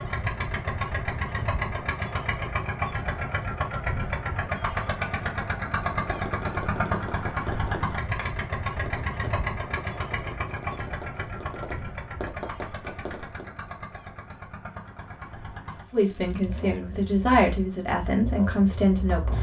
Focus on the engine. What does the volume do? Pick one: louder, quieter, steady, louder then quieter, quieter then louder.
quieter.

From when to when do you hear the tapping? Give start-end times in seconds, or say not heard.
5.9-13.5.